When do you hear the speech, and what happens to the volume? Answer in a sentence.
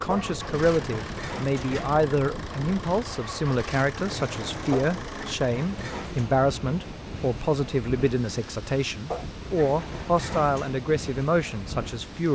You can hear the speech from 0.0 to 12.3 s, at a steady volume.